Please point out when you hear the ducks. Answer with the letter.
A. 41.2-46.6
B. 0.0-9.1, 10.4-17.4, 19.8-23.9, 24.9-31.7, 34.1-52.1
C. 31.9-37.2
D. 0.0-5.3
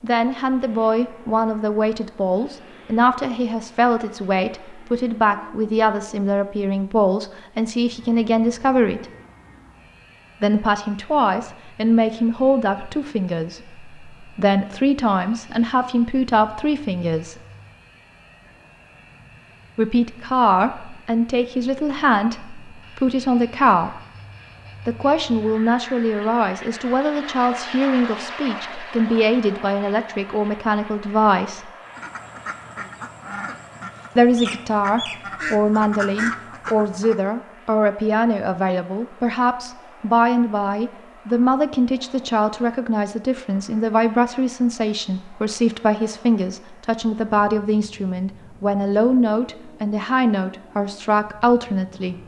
C.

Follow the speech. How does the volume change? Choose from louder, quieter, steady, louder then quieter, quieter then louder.
steady.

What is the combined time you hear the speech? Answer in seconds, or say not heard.
45 s.